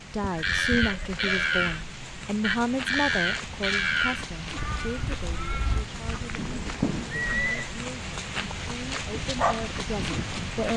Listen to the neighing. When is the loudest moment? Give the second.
7 s.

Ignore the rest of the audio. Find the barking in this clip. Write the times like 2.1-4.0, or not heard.
9.1-10.7.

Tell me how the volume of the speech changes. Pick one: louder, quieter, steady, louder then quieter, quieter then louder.
quieter then louder.